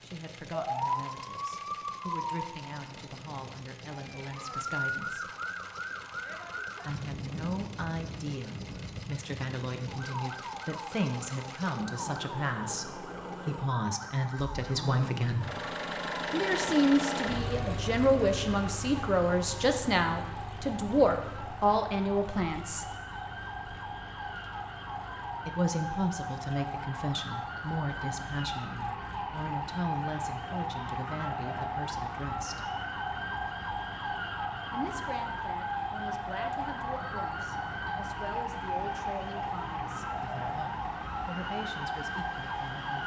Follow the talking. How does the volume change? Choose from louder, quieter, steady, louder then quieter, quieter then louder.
louder then quieter.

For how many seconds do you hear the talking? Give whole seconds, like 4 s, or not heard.
36 s.